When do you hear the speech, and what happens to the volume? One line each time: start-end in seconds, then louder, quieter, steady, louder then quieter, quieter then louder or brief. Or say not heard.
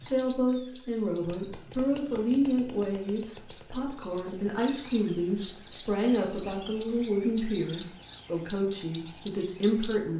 0.0-10.1 steady.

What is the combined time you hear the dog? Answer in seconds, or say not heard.
not heard.